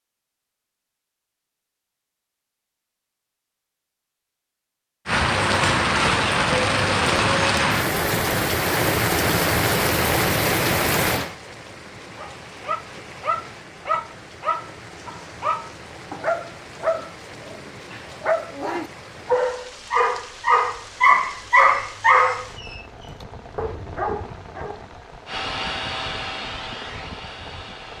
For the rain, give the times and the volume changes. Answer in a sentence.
The rain can be heard from 5.0 to 27.9 s, getting quieter.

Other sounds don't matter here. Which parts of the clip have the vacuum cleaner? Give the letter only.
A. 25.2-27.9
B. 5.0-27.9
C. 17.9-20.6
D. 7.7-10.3
A.